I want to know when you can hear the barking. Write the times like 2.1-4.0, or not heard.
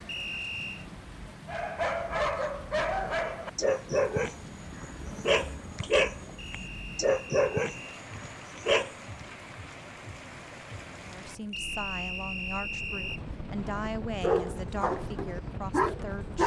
1.4-9.2, 14.2-16.4.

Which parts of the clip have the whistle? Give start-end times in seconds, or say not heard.
0.1-0.8, 6.3-8.0, 11.5-13.2.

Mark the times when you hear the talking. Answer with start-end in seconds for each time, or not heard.
11.1-16.4.